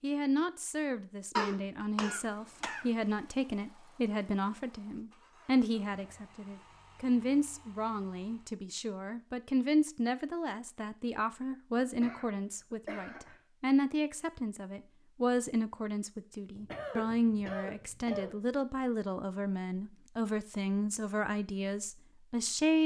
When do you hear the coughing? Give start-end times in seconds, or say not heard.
1.4-2.9, 11.8-13.4, 16.6-18.4.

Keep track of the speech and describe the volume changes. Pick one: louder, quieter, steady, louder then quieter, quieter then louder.
steady.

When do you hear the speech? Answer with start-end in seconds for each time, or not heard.
0.0-22.8.